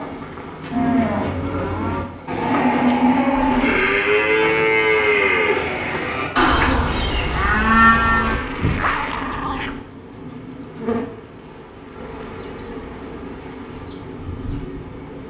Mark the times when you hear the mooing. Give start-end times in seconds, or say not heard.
0.7-8.8.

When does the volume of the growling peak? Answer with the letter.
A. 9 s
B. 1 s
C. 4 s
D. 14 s
A.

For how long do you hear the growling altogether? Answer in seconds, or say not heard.
2 s.